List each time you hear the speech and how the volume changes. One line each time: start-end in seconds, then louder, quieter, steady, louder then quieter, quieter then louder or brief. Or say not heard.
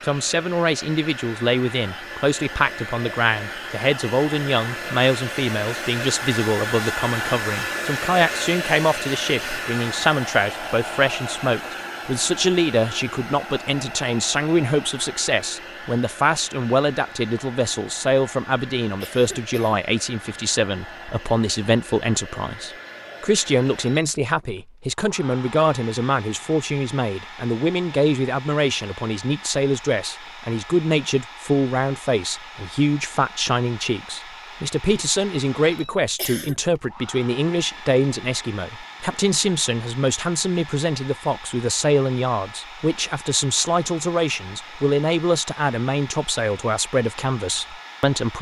0.0-48.3 steady.